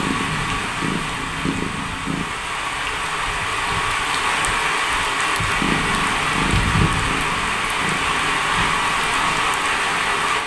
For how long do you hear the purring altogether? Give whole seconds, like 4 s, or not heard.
7 s.